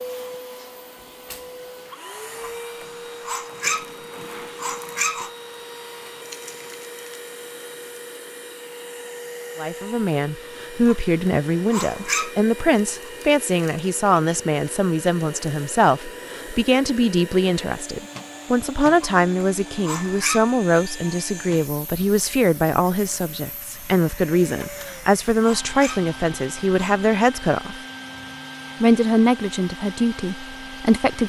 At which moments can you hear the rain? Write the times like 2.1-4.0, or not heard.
not heard.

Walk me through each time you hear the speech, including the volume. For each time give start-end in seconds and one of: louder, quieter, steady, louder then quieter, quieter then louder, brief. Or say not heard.
9.6-27.8 steady
28.8-31.2 brief.